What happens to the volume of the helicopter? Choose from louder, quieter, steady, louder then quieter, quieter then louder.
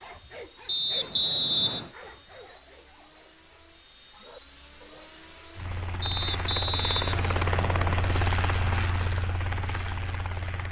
louder.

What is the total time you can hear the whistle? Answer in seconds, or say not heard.
3 s.